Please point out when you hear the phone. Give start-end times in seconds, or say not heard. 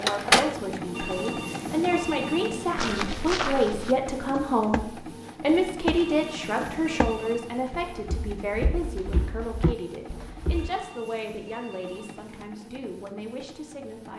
0.9-3.0, 5.9-7.5, 10.5-12.5.